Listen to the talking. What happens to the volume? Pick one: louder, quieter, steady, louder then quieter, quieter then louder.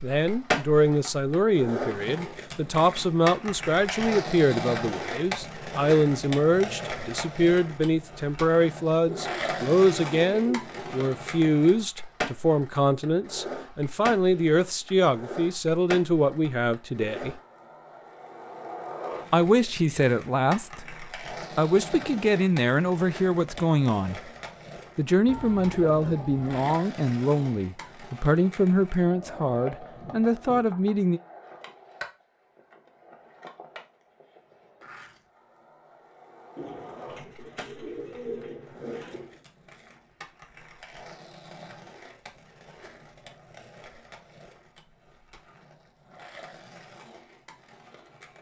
steady.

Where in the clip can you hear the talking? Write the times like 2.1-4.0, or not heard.
0.0-17.4, 19.3-24.2, 24.9-31.2.